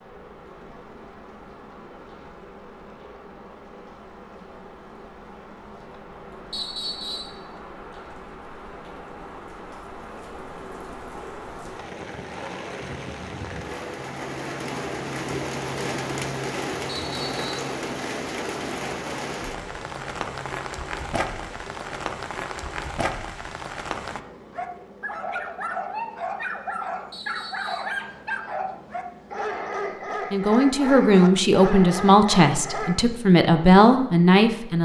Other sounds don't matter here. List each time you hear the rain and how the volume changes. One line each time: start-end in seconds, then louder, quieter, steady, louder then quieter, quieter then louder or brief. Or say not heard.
0.0-24.2 louder.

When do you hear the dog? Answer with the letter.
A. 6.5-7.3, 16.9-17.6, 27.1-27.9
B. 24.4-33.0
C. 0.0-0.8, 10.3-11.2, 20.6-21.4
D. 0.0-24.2
B.